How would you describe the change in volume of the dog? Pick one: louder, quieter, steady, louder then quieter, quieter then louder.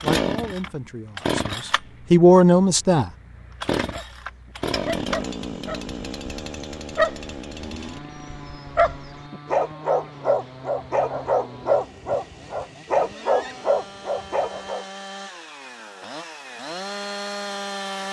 louder.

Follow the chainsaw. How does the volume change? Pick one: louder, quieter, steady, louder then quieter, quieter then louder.
quieter then louder.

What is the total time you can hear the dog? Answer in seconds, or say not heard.
11 s.